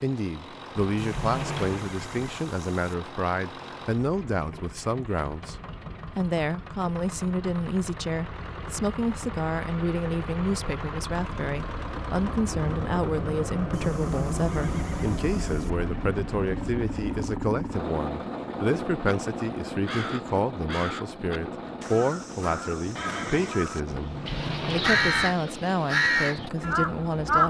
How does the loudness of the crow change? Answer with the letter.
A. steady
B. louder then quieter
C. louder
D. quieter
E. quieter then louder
C.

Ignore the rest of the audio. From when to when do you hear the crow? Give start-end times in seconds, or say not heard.
19.9-27.4.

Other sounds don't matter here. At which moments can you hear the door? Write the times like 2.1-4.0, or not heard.
0.8-1.9, 23.9-25.4.